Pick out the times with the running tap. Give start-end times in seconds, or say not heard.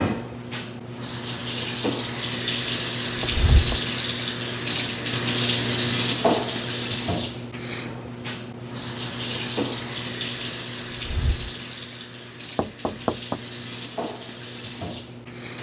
0.0-15.5.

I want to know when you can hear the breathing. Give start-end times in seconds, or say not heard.
not heard.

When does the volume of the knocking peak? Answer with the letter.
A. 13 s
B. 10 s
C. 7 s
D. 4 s
A.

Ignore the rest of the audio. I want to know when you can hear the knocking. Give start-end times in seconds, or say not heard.
3.2-3.9, 12.6-13.4.